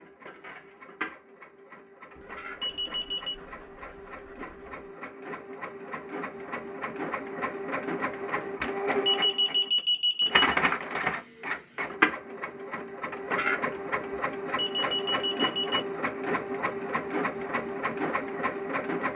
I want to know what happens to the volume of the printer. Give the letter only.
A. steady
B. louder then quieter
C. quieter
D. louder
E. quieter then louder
D.